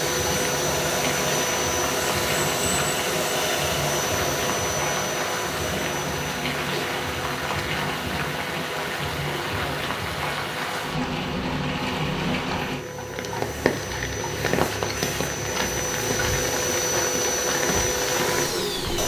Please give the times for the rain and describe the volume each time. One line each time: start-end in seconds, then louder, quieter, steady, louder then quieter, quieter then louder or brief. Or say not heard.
0.0-19.0 steady.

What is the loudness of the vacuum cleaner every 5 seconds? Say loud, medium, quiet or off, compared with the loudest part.
loud, medium, medium, loud.